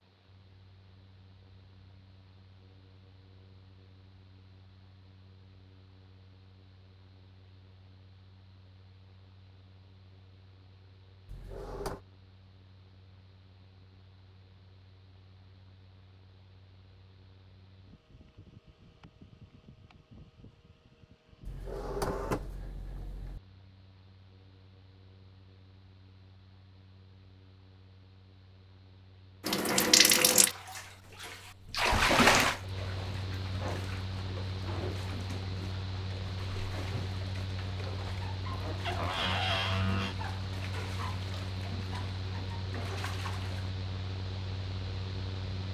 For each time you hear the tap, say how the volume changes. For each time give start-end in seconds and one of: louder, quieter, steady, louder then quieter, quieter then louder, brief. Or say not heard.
29.4-43.7 quieter.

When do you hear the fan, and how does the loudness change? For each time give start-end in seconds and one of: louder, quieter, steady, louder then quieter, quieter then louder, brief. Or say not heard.
0.0-45.6 louder.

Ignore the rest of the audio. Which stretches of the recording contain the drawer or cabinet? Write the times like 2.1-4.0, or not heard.
11.2-12.0, 21.4-23.4, 38.9-40.1.